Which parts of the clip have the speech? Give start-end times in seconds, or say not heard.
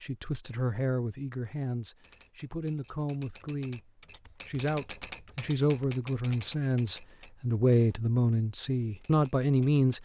0.0-10.0.